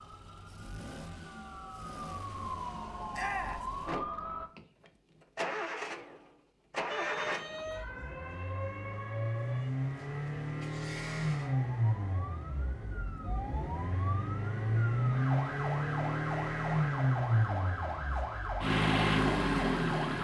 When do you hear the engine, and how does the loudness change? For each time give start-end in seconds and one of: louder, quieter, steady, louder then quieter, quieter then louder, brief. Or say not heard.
0.0-20.1 louder.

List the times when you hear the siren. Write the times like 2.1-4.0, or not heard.
0.0-4.5, 6.8-20.1.